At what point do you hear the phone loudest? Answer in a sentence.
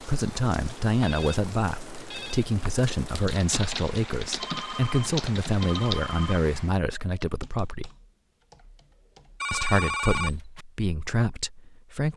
The loudest moment of the phone is at 10 seconds.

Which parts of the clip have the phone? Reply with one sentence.
The phone can be heard from 1.0 to 2.5 s, from 4.4 to 6.4 s and from 9.4 to 10.7 s.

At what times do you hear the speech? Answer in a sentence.
You can hear the speech from 0.0 to 7.9 s and from 9.5 to 12.1 s.